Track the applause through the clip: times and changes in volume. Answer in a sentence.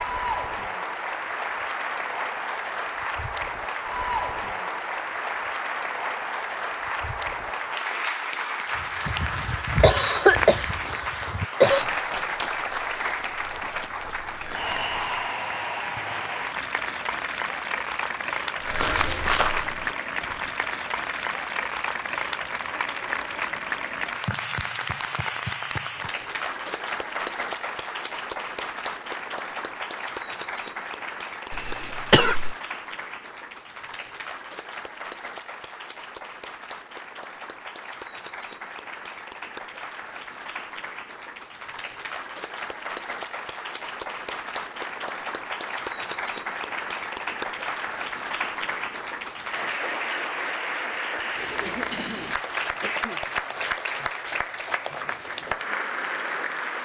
You can hear the applause from 0.0 to 56.7 s, getting quieter then louder.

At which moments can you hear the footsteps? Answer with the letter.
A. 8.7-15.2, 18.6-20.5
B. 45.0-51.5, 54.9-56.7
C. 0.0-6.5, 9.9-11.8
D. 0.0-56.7
A.